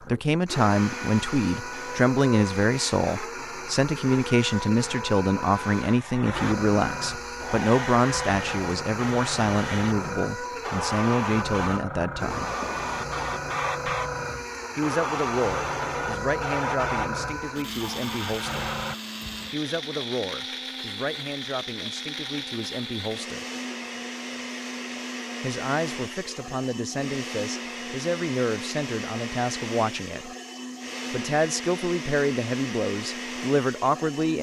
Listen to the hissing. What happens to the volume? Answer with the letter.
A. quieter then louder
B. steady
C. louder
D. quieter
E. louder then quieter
C.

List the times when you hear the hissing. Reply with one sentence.
You can hear the hissing from 0.0 to 18.9 s.